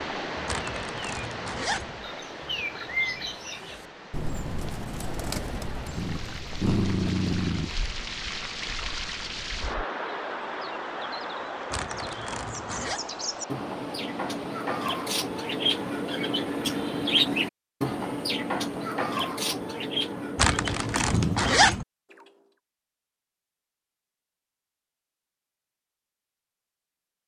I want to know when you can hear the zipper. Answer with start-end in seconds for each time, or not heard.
0.5-1.9, 11.7-13.0, 20.4-21.9.